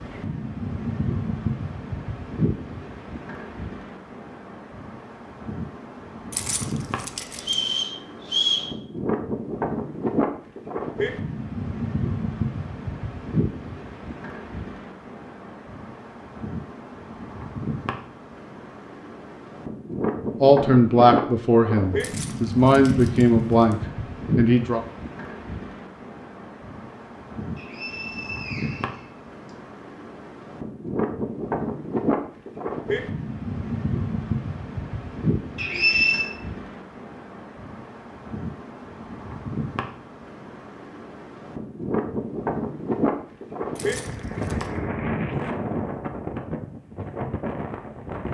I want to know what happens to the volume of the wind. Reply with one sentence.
The volume of the wind stays about the same.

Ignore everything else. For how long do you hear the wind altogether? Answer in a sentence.
The wind can be heard for 48 seconds in total.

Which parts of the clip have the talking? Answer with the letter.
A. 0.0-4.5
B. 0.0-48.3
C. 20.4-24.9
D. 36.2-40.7
C.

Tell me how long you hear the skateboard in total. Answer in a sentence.
You can't hear the skateboard here.